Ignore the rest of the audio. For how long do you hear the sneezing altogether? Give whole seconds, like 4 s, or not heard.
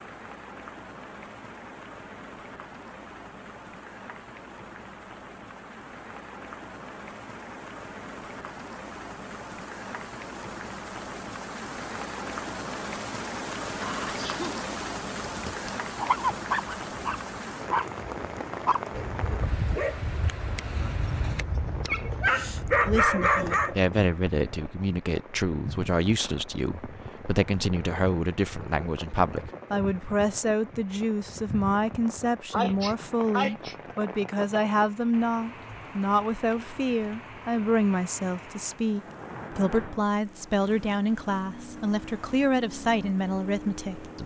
2 s.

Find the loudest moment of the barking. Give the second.
23 s.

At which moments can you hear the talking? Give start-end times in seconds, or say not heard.
22.9-44.2.